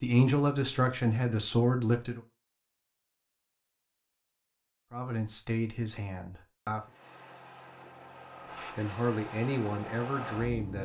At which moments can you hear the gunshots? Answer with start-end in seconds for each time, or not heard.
not heard.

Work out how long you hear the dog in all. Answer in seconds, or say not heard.
not heard.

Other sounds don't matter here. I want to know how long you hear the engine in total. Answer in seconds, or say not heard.
4 s.